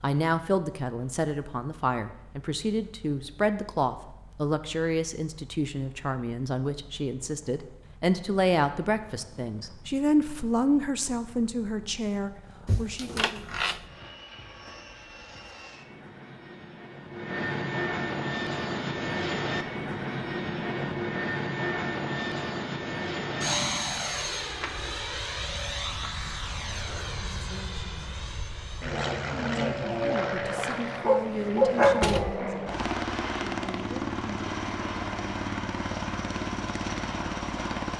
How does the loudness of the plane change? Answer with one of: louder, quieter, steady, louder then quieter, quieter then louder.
louder.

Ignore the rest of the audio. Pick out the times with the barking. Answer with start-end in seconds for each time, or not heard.
31.0-32.3.